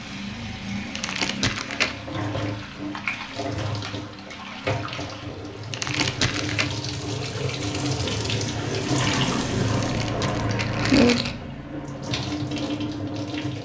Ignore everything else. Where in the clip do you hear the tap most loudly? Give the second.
9 s.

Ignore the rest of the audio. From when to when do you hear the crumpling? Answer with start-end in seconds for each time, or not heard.
0.9-1.9, 5.7-6.7, 9.7-11.3.